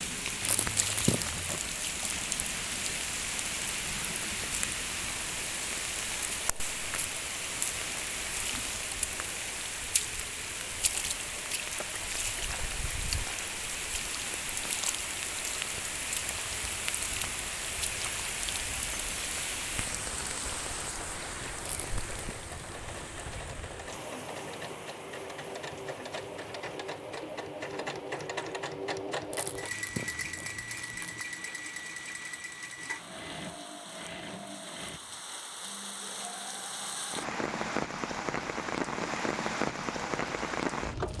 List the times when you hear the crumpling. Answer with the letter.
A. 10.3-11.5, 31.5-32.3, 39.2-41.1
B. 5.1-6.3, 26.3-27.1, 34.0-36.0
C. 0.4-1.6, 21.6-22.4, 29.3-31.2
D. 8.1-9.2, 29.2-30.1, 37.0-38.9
C.